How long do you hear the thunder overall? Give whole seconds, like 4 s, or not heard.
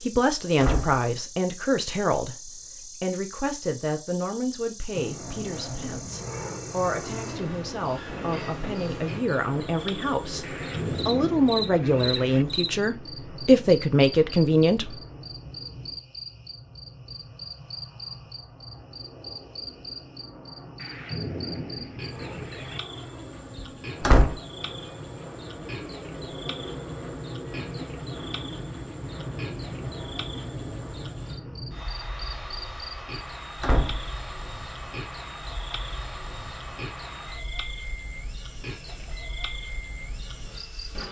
4 s.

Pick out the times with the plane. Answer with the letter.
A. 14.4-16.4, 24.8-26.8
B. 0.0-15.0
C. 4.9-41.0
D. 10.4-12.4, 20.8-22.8
C.